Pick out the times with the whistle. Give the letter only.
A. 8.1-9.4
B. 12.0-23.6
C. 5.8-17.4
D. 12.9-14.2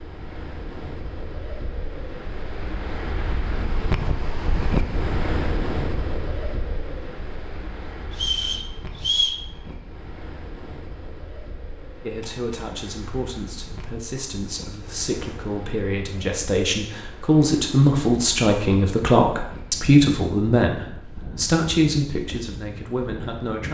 A.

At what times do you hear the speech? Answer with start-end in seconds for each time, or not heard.
12.0-23.6.